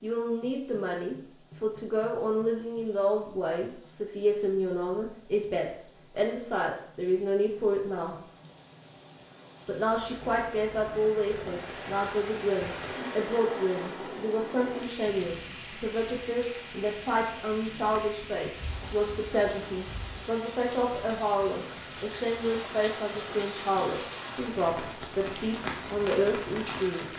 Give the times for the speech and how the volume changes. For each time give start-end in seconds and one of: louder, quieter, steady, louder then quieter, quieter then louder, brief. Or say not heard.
0.0-8.2 steady
9.7-27.1 steady.